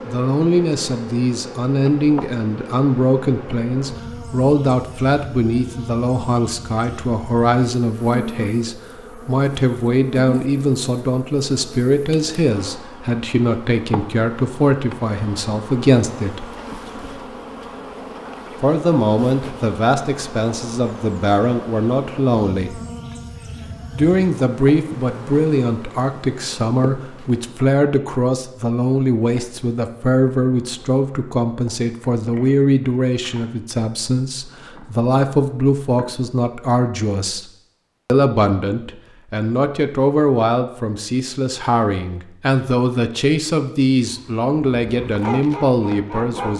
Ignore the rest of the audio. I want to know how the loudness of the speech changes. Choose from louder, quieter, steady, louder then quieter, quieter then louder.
steady.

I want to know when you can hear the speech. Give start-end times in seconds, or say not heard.
0.1-16.4, 18.6-22.8, 23.9-37.5, 38.0-46.5.